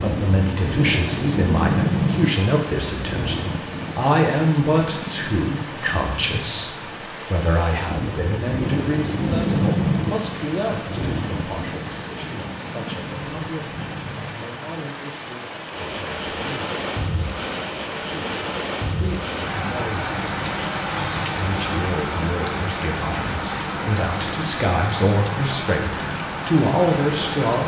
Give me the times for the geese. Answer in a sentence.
The geese can't be heard in this clip.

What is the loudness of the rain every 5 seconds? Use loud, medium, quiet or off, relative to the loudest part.
loud, loud, medium, loud, loud, loud.